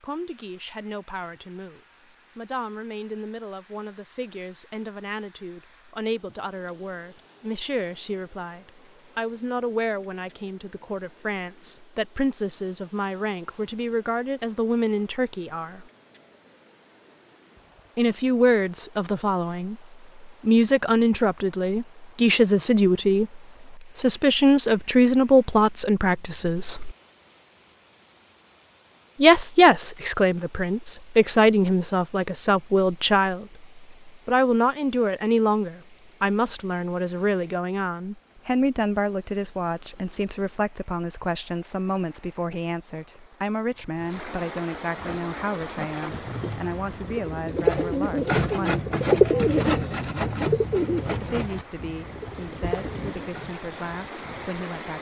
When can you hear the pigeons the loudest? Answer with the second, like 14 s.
49 s.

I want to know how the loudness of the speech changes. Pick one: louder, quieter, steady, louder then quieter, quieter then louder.
louder then quieter.